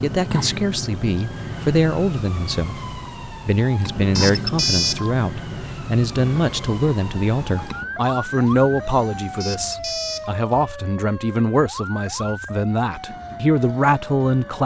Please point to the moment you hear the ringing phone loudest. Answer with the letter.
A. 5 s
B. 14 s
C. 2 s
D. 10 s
A.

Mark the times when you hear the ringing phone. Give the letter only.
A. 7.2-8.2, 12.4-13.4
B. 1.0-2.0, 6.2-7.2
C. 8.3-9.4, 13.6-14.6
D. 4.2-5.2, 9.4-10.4
D.